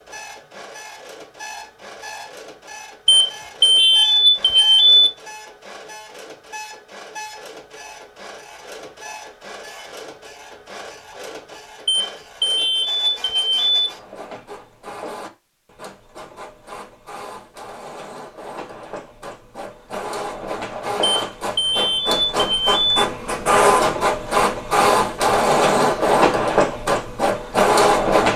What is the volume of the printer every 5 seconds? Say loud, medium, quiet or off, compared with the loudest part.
quiet, quiet, quiet, quiet, loud, loud.